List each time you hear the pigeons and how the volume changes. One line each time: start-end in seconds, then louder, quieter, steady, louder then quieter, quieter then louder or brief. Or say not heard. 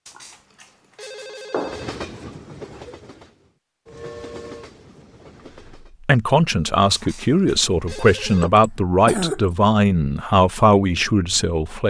not heard.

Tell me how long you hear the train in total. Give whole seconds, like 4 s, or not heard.
4 s.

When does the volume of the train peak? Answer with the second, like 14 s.
2 s.